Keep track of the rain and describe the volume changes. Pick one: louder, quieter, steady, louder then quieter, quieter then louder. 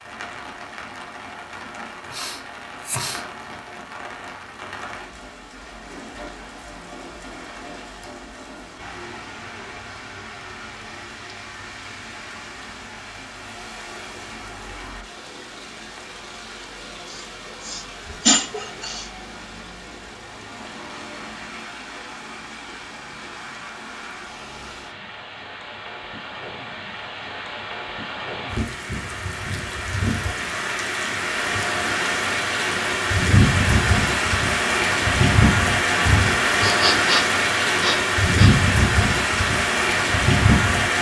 louder.